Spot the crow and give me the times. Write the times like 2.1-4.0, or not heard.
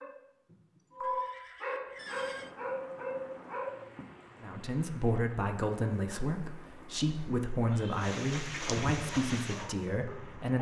not heard.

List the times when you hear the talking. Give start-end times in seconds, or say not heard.
4.4-10.5.